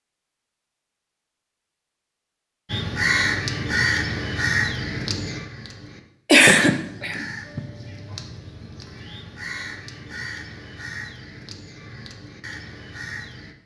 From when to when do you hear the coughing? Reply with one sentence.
The coughing can be heard from 6.2 to 7.6 s.